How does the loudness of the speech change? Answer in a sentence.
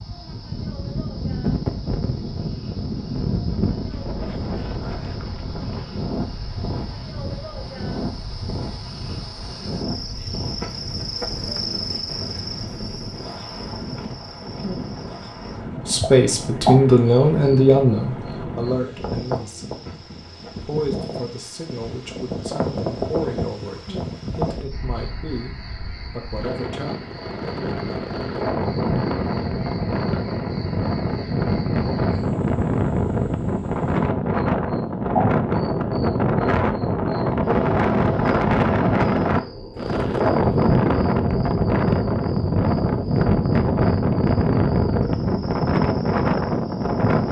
The loudness of the speech goes down.